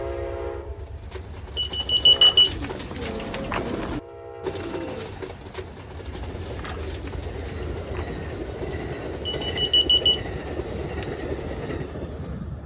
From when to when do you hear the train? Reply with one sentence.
You can hear the train from 0.0 to 12.6 s.